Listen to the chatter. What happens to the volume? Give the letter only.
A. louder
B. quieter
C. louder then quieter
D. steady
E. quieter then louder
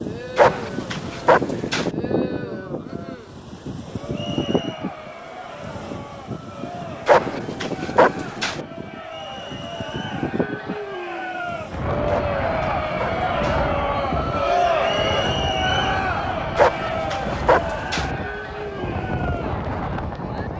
C.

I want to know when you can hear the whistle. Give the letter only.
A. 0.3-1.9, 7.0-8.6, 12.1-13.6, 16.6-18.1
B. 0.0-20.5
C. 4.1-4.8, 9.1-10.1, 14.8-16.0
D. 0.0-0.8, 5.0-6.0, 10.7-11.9
C.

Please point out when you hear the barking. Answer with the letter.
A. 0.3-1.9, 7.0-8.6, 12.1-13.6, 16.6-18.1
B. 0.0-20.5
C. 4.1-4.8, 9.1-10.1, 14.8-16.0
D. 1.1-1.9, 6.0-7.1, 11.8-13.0
A.